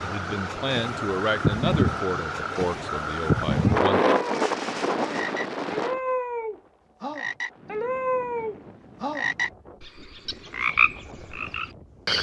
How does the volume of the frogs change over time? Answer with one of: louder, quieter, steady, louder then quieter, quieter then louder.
louder.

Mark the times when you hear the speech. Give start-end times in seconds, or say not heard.
0.0-4.0.